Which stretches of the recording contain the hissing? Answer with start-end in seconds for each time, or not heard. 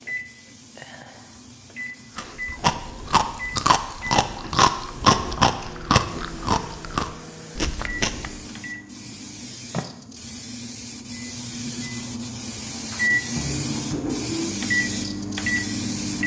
0.0-16.2.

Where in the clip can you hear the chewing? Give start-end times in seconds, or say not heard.
2.1-8.5.